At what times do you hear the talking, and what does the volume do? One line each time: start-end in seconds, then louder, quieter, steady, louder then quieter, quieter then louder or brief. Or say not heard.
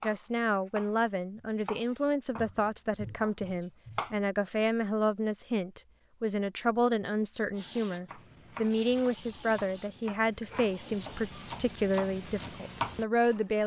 0.0-13.6 steady.